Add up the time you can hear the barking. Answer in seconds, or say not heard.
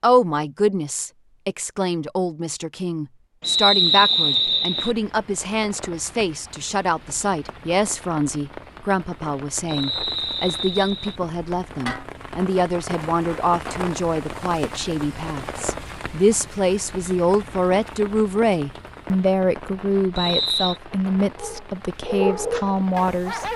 2 s.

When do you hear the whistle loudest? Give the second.
4 s.